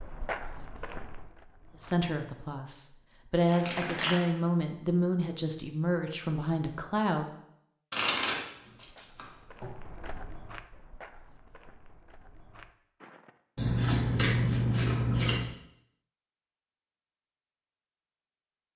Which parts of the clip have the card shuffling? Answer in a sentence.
You can hear the card shuffling from 3.5 to 4.3 s, from 7.9 to 9.7 s and from 13.6 to 15.4 s.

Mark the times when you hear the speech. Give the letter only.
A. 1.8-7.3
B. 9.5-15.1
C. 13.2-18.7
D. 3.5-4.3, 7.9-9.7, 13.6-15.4
A.